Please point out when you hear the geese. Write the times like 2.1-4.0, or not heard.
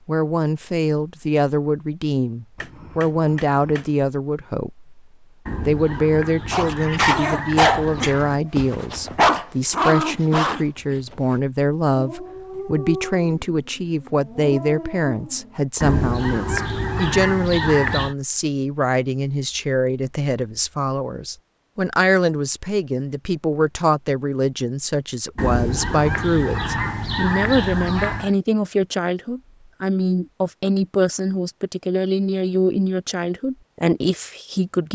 5.5-8.4, 15.8-18.1, 25.4-28.4.